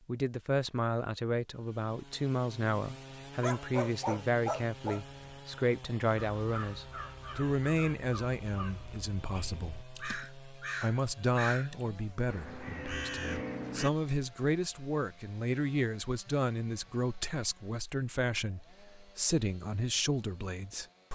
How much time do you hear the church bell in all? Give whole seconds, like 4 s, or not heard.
not heard.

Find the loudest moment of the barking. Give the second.
4 s.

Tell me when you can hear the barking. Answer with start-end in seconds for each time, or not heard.
3.4-5.2.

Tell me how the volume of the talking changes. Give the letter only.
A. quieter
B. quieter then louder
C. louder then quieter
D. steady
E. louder
D.